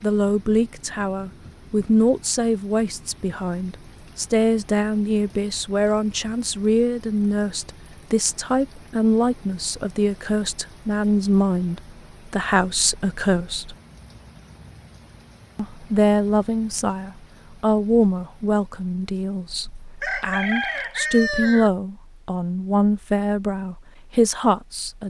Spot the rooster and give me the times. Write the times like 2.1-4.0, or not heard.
20.0-21.7.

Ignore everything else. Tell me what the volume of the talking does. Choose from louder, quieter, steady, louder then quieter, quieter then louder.
steady.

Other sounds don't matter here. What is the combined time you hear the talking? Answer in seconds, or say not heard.
23 s.